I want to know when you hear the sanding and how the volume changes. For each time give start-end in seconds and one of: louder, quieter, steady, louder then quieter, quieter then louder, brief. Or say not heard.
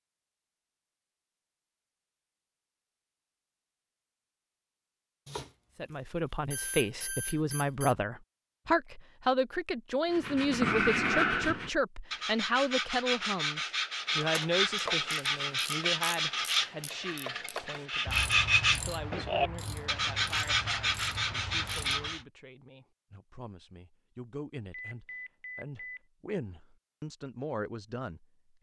10.1-22.2 steady.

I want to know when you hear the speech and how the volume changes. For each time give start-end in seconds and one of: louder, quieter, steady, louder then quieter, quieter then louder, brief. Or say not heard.
5.8-28.5 quieter then louder.